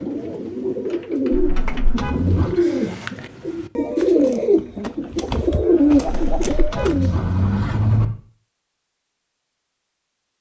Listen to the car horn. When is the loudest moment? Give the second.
8 s.